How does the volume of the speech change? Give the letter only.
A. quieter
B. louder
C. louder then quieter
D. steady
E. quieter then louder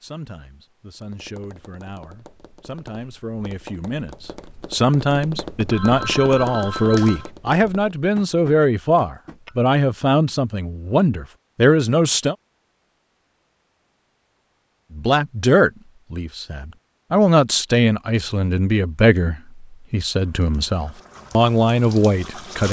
B.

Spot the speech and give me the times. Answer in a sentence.
You can hear the speech from 0.0 to 12.3 s and from 14.9 to 22.6 s.